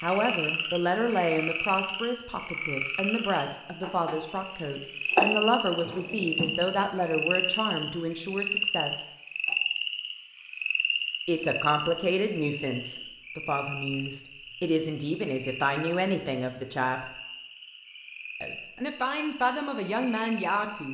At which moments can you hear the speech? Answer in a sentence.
The speech can be heard from 0.0 to 9.1 s, from 11.2 to 17.1 s and from 18.4 to 20.8 s.